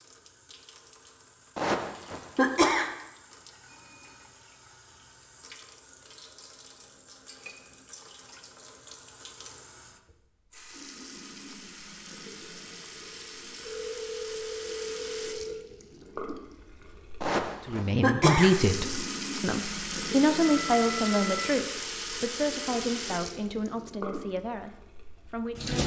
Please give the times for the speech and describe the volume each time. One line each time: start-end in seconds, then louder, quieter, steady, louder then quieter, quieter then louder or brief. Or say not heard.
17.6-25.8 quieter.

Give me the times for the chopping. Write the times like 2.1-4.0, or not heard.
not heard.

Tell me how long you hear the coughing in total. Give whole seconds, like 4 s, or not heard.
3 s.